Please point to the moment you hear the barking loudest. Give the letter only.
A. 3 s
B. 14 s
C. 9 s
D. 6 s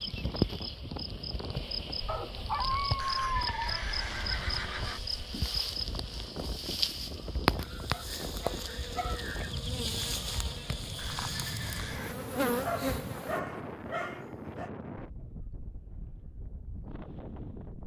A.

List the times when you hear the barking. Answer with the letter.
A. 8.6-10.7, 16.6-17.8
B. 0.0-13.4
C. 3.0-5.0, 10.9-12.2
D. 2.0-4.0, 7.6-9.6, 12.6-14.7
D.